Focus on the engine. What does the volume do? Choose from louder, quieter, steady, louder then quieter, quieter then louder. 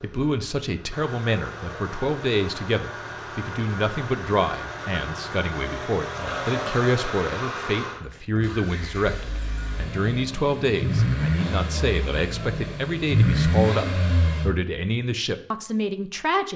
louder.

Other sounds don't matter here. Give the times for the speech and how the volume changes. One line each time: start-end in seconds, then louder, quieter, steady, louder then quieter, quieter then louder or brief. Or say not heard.
0.0-16.5 steady.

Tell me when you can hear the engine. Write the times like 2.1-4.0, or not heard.
0.0-14.5.